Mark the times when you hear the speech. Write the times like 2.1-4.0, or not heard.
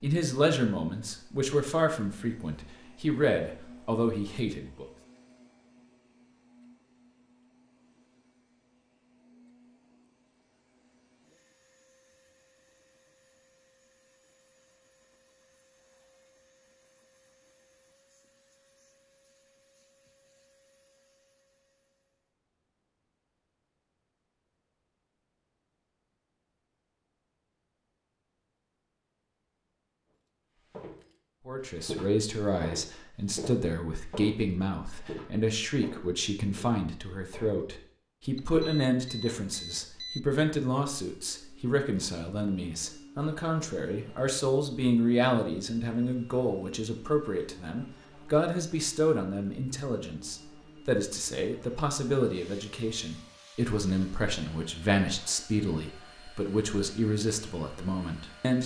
0.0-4.8, 31.4-58.6.